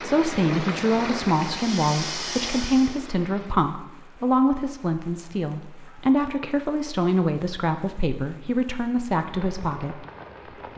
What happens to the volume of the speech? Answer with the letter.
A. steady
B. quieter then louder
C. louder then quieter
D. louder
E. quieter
A.